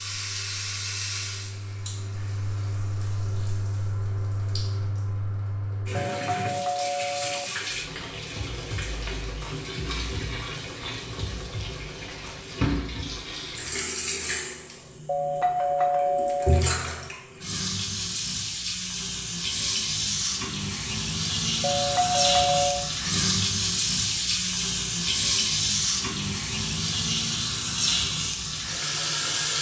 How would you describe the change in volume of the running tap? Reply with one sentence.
The volume of the running tap goes up.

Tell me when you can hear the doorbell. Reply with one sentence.
You can hear the doorbell from 6.0 to 7.5 s, from 15.1 to 16.6 s and from 21.6 to 22.9 s.